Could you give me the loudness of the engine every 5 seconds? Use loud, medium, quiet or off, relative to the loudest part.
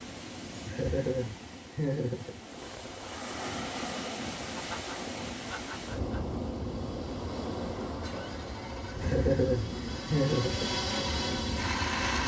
off, quiet, loud.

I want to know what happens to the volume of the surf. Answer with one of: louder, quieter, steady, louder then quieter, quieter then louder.
louder.